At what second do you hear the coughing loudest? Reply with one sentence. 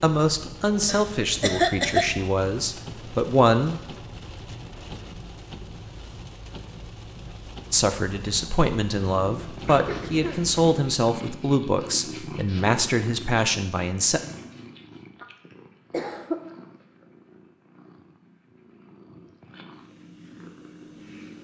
The loudest moment of the coughing is at 2 seconds.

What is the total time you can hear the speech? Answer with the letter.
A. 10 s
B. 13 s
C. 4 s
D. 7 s
A.